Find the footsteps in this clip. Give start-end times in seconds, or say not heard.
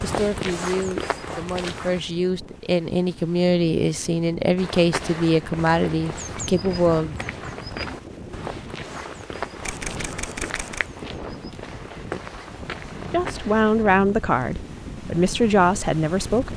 0.0-2.0, 4.5-13.8.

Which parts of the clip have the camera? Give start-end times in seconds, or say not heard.
9.6-10.9.